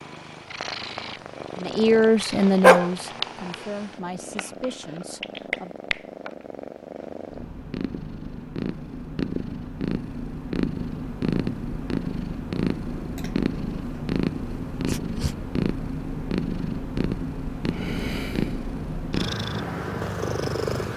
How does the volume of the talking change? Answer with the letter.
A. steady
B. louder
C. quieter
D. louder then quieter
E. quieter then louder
C.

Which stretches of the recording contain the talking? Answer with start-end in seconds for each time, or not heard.
1.6-5.8.